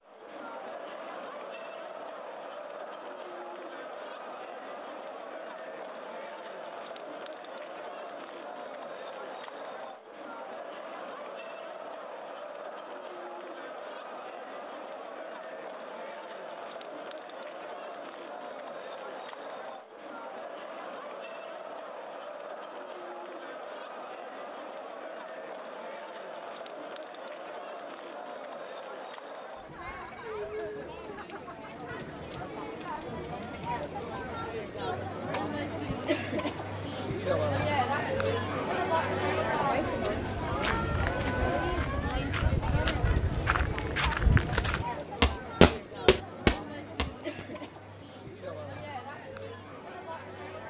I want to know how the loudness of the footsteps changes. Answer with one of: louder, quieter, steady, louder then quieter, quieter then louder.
louder.